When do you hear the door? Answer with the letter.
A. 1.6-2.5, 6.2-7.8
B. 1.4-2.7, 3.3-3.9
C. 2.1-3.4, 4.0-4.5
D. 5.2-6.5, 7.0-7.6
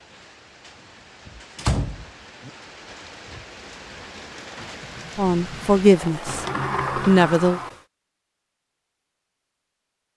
A.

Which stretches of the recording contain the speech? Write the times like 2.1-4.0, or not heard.
5.2-6.5, 7.0-7.6.